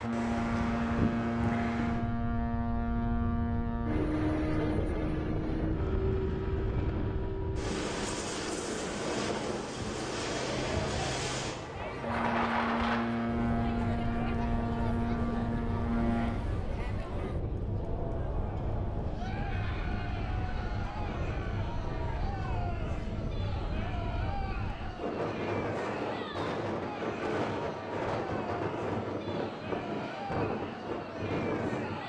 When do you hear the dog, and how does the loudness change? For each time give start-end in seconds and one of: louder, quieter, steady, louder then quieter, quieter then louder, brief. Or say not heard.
not heard.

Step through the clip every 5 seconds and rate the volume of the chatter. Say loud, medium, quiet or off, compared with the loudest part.
off, off, loud, loud, loud, loud, loud.